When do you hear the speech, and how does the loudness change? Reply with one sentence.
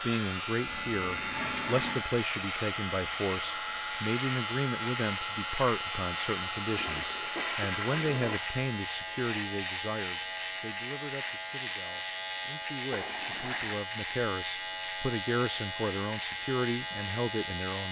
The speech can be heard from 0.0 to 17.8 s, getting quieter then louder.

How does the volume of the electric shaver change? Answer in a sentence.
The volume of the electric shaver stays about the same.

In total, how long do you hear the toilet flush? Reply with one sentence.
The toilet flush can be heard for 4 seconds in total.